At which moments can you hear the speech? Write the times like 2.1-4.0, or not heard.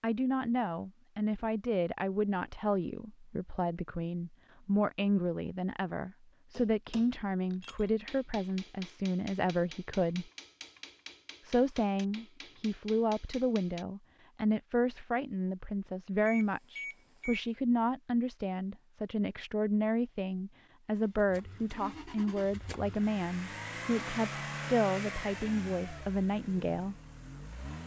0.0-10.2, 11.4-26.9.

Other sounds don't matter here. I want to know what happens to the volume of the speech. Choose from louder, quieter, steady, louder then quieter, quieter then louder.
steady.